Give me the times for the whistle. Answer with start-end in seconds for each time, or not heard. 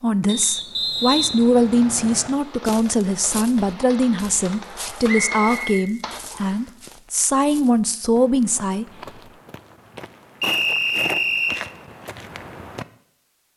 0.2-2.3, 5.0-6.6, 10.4-11.6.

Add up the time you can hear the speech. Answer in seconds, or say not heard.
9 s.